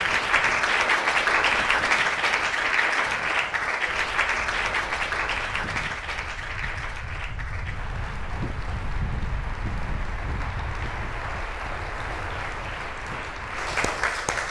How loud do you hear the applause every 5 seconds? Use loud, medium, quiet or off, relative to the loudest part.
loud, medium, medium.